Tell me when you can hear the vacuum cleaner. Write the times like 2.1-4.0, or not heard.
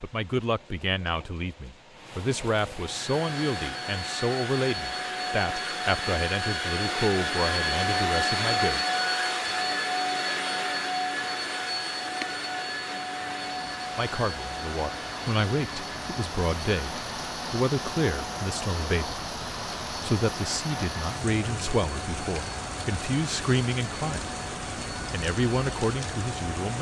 2.8-26.7.